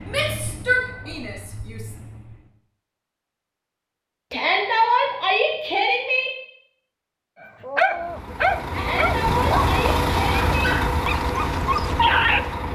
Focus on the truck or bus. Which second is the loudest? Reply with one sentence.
The loudest moment of the truck or bus is at 10 seconds.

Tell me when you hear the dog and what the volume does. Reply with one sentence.
You can hear the dog from 7.6 to 12.5 s, getting quieter then louder.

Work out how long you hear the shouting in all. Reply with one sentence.
The shouting can be heard for 6 seconds in total.